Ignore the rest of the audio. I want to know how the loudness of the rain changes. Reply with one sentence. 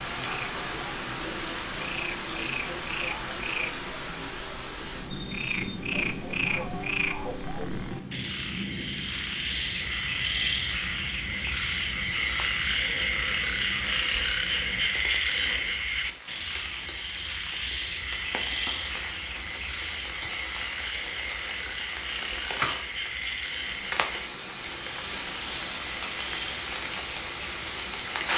The loudness of the rain goes down, then up.